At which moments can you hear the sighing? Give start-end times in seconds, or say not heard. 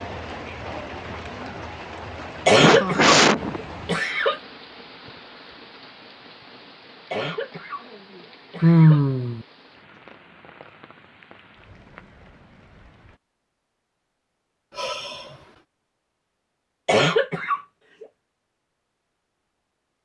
2.5-3.6, 8.6-9.4, 14.7-15.4.